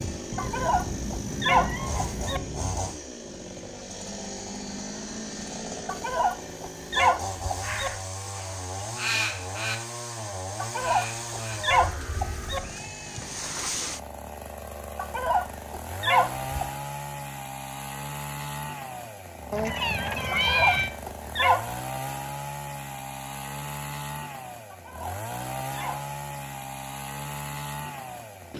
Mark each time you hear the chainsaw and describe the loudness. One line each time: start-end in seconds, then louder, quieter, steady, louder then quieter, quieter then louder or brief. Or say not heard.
0.0-28.5 steady.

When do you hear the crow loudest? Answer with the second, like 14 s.
9 s.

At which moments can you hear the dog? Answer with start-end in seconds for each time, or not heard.
0.3-2.4, 5.8-7.9, 10.6-12.6, 14.9-16.5, 20.3-21.8, 24.7-26.1.